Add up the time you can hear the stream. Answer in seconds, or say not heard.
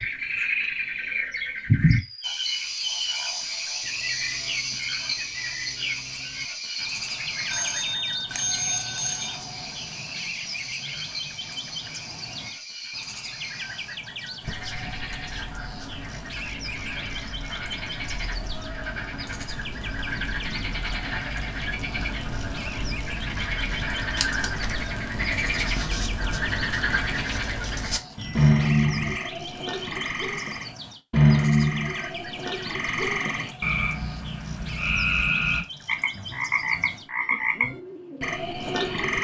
not heard.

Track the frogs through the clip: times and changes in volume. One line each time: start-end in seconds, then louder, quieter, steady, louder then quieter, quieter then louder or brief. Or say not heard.
0.0-39.1 quieter then louder.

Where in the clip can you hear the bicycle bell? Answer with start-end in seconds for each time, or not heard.
7.5-9.3, 28.1-29.2.